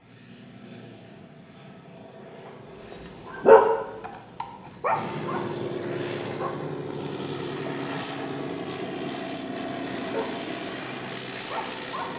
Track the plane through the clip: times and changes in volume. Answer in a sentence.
The plane can be heard from 0.0 to 12.1 s, getting louder.